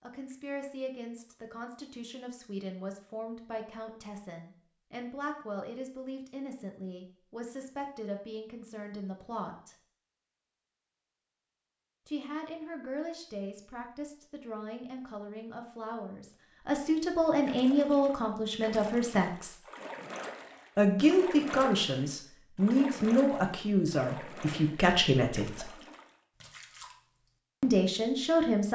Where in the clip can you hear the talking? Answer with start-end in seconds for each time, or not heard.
0.0-9.8, 12.1-19.6, 20.8-25.7, 27.6-28.7.